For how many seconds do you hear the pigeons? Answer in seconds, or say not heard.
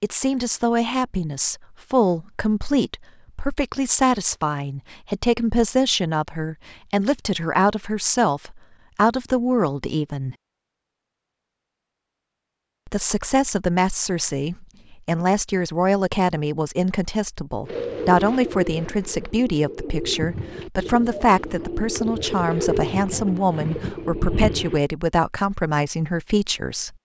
7 s.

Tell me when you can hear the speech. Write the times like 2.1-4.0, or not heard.
0.0-10.3, 12.8-26.9.